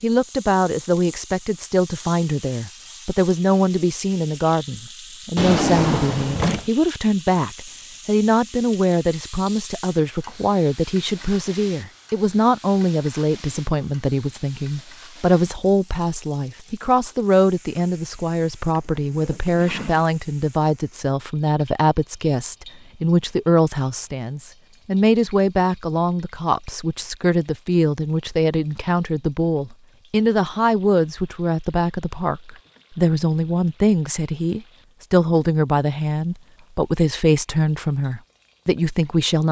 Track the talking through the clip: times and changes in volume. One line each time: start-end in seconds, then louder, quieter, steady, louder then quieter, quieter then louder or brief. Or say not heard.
0.0-39.4 steady.